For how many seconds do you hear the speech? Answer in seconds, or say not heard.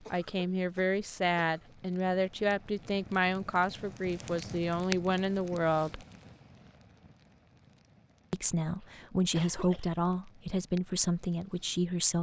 10 s.